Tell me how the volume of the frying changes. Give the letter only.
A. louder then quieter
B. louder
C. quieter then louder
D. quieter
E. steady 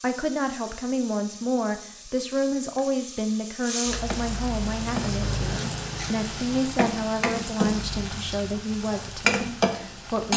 B.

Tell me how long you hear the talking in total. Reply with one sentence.
The talking can be heard for 10 seconds in total.